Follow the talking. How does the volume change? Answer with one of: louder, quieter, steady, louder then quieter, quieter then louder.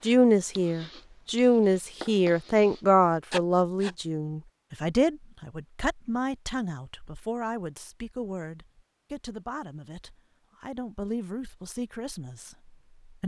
quieter.